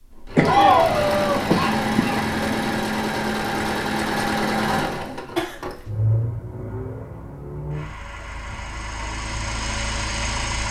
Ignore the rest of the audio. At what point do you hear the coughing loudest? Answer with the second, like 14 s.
1 s.